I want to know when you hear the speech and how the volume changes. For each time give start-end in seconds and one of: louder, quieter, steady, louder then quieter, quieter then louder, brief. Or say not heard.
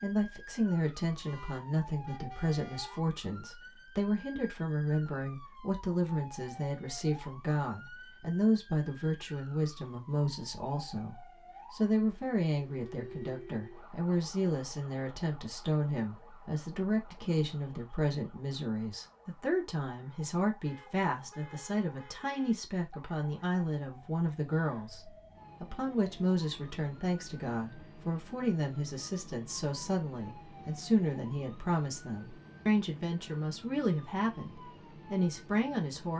0.0-36.1 steady.